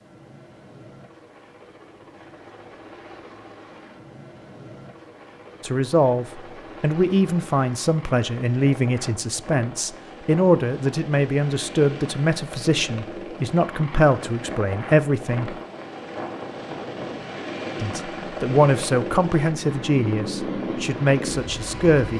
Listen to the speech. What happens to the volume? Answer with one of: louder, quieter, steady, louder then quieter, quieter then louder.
steady.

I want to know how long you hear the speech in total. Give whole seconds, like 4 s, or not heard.
14 s.